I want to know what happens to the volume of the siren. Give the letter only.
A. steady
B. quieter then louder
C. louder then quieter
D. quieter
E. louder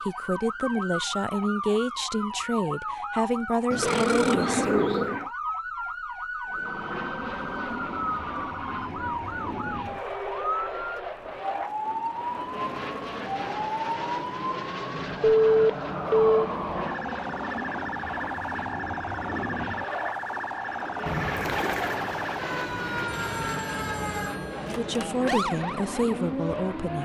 A.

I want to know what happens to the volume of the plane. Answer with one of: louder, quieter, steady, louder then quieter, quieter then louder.
steady.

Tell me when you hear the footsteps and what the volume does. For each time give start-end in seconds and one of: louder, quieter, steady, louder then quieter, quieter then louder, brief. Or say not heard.
not heard.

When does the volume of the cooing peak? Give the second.
5 s.